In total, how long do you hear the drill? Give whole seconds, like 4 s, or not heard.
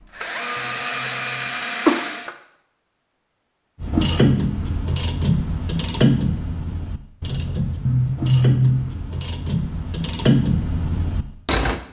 2 s.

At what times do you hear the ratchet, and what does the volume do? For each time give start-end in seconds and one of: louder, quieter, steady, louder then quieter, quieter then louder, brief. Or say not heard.
3.8-11.8 quieter then louder.